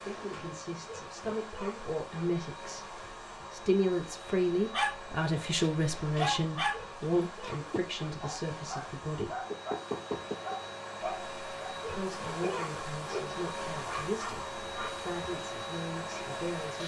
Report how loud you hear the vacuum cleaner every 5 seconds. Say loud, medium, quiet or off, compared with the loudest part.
medium, medium, loud, loud.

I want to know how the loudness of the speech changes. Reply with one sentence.
The volume of the speech goes up, then down.